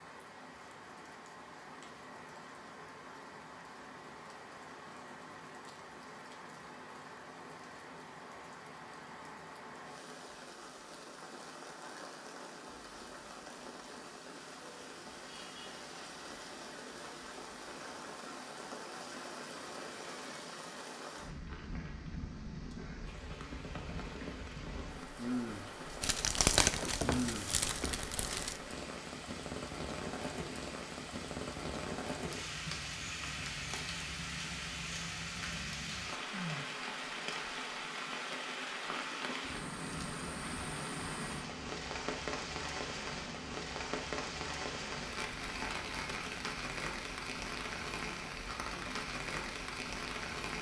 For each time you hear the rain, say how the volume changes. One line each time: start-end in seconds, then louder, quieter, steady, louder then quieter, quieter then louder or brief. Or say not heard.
0.0-50.5 louder.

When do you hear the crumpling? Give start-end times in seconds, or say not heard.
26.0-28.6.